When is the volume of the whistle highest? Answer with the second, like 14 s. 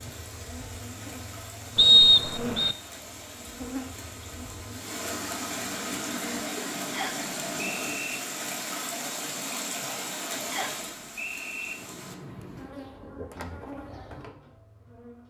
2 s.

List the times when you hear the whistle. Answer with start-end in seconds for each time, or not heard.
1.8-2.8, 6.9-8.2, 10.5-11.8.